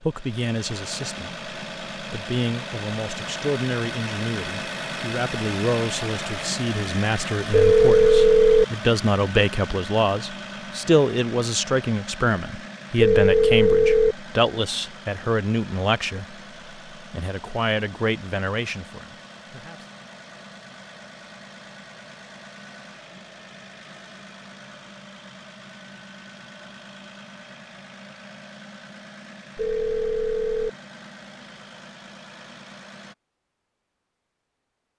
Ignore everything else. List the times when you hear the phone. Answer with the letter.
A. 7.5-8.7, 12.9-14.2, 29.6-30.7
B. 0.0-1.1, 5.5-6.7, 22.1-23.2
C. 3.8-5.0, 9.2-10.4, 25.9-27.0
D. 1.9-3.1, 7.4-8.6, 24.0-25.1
A.